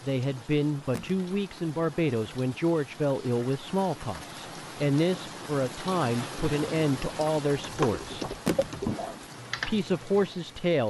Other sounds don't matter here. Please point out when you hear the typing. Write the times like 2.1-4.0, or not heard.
7.6-10.6.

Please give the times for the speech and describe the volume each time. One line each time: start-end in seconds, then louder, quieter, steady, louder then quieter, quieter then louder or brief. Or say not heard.
0.0-8.2 steady
9.7-10.8 brief.